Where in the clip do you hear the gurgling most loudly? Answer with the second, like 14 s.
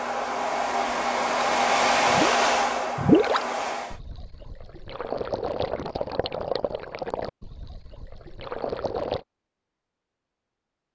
3 s.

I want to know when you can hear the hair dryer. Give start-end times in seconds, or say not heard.
0.0-4.0.